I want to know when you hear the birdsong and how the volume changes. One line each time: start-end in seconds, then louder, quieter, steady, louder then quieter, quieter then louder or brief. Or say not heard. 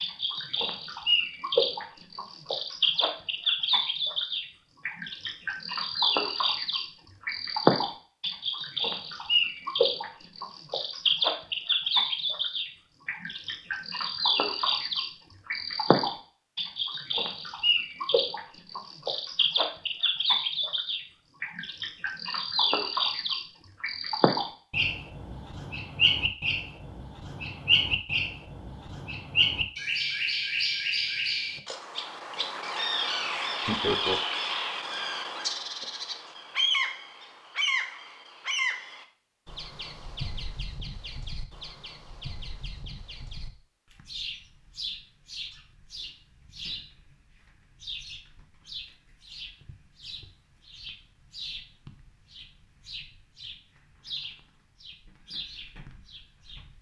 0.0-56.7 quieter.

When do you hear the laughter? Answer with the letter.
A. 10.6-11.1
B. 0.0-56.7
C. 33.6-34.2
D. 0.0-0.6
C.